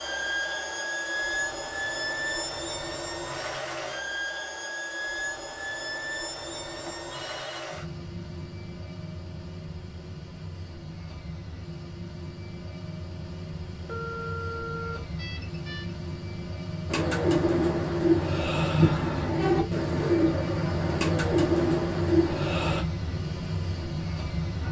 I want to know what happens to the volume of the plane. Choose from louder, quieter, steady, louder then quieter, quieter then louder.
quieter then louder.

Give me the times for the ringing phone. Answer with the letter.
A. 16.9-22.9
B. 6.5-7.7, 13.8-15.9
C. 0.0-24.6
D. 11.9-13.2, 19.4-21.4
B.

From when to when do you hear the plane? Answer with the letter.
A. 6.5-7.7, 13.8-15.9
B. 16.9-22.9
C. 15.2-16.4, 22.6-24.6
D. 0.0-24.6
D.